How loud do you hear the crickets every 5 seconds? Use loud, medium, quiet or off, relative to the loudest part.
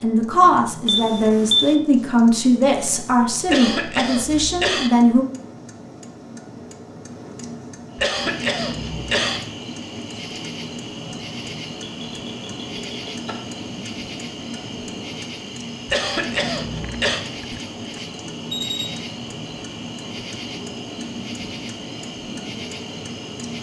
off, loud, loud, loud, loud.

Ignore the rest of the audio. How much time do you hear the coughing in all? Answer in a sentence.
You can hear the coughing for 4 seconds altogether.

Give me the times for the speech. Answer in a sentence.
You can hear the speech from 0.0 to 5.2 s.